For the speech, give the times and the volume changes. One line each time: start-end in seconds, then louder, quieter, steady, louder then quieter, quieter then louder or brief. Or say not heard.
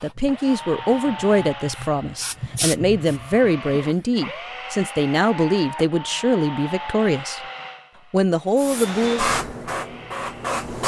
0.0-7.4 steady
8.1-9.3 brief.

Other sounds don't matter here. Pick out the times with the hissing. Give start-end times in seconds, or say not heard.
0.0-4.2, 8.6-10.8.